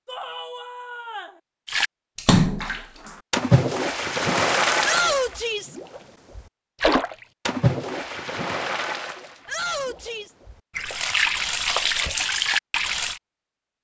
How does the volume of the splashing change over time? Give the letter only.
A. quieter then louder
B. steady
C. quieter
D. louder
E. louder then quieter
A.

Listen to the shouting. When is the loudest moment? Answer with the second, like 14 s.
5 s.